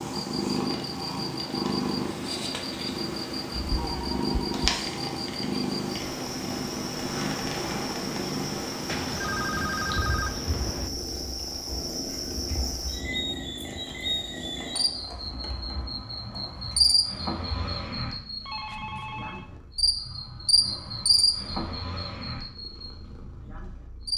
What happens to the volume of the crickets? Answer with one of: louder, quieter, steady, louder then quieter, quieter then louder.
louder.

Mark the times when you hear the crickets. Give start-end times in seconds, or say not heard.
0.1-24.1.